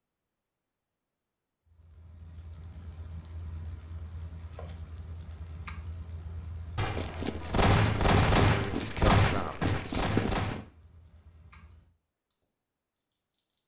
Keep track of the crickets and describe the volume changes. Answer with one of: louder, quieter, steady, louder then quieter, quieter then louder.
quieter.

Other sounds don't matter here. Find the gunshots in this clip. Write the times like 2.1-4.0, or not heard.
6.8-10.6.